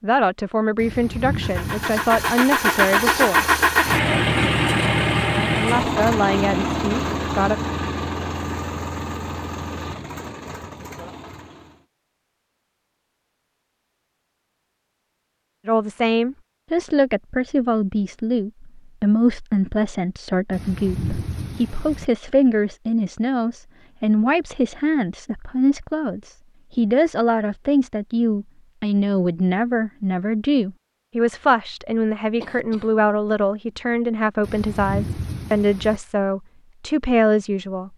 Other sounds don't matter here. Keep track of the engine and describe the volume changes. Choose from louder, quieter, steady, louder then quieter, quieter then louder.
quieter.